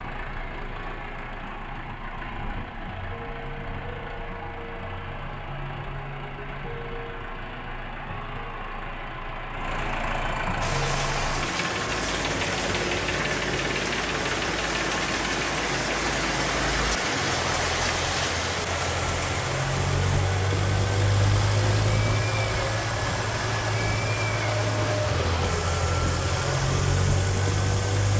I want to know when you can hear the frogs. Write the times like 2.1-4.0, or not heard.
not heard.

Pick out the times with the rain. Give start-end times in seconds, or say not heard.
10.6-28.1.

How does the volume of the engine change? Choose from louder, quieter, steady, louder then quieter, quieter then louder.
louder.